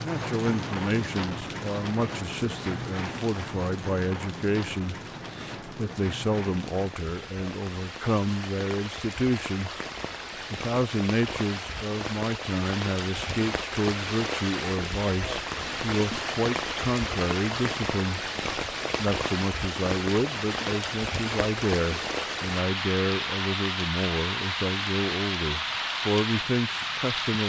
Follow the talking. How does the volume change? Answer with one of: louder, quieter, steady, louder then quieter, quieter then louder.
steady.